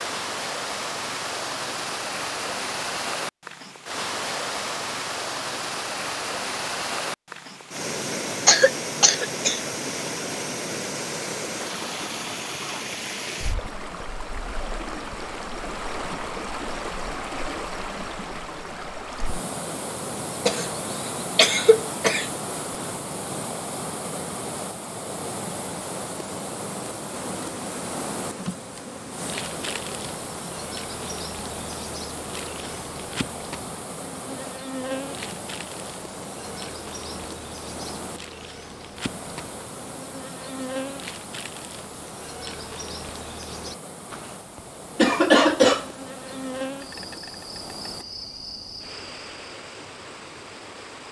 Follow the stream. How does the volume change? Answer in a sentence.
The loudness of the stream goes down.